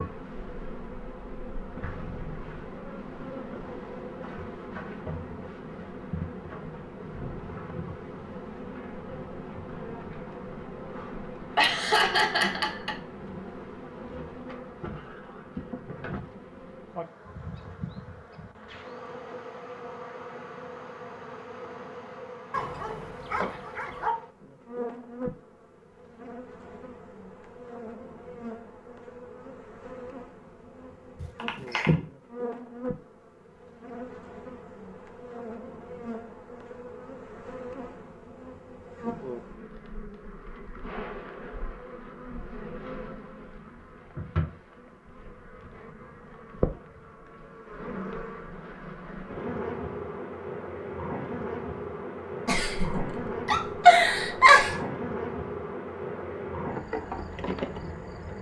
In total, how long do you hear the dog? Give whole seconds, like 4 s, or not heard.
2 s.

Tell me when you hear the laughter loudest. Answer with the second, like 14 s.
54 s.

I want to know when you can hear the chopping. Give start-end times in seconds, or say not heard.
not heard.